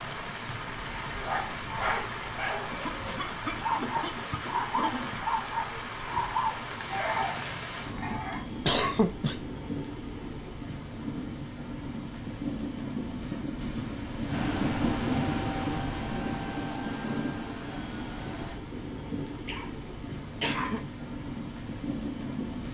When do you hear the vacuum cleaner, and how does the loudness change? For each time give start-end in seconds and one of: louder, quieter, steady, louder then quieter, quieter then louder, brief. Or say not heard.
14.2-18.6 quieter.